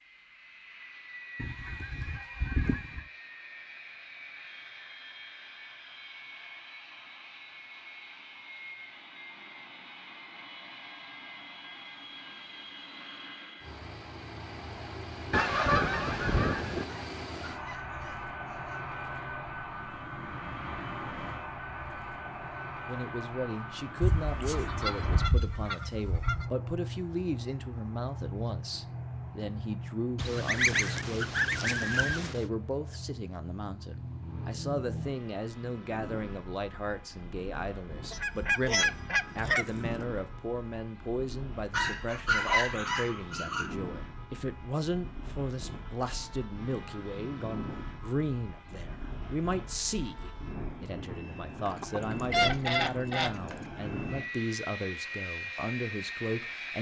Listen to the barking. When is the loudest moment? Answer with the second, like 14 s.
42 s.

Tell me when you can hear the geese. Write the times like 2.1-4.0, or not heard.
1.4-3.0, 15.3-16.9, 24.0-26.5, 30.1-32.5, 38.1-40.0, 51.7-53.4.